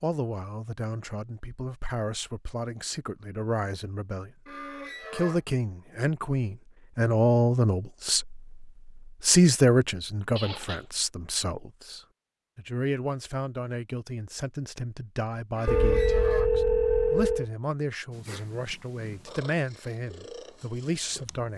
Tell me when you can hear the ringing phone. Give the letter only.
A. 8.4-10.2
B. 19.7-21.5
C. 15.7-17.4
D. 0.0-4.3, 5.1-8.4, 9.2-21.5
C.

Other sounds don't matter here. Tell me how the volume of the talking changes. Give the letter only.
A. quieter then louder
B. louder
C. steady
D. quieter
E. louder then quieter
E.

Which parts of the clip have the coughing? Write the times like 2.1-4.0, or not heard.
not heard.